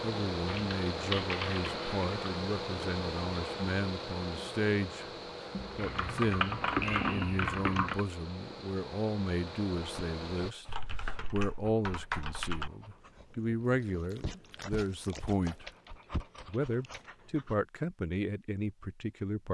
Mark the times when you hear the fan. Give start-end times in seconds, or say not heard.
0.0-10.6.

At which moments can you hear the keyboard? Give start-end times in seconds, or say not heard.
0.5-2.2, 5.5-8.1, 10.7-12.7, 15.4-17.1.